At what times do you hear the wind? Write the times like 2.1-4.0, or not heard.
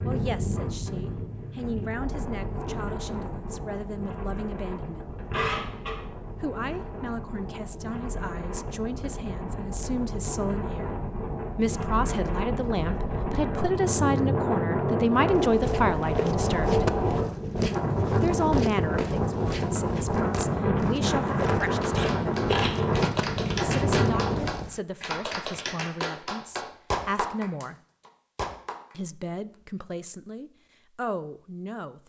0.0-24.4.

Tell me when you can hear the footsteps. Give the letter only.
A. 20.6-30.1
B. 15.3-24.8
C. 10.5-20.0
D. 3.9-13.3
B.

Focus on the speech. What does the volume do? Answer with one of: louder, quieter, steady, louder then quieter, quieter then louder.
louder then quieter.